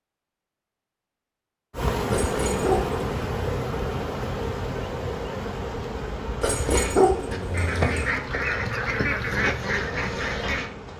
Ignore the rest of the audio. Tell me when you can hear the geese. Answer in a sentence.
The geese can be heard from 6.7 to 10.7 s.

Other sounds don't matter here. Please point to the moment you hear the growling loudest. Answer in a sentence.
The loudest moment of the growling is at 7 seconds.